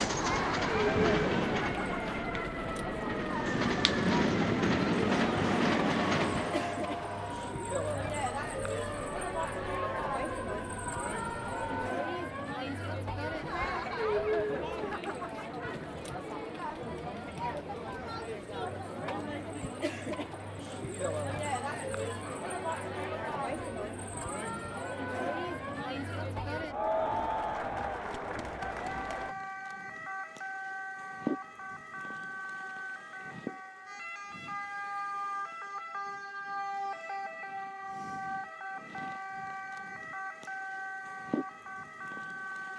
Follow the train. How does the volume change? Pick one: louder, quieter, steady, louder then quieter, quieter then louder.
quieter then louder.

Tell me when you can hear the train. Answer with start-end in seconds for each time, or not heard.
0.0-6.8.